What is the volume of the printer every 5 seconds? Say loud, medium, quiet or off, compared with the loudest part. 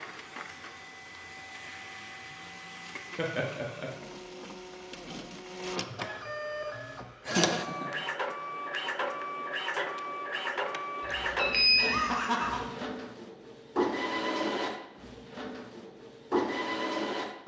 medium, loud, loud, loud.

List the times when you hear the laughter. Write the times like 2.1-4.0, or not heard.
3.1-3.9, 7.2-7.9, 11.8-12.6.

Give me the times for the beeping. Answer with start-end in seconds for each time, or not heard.
11.0-11.8.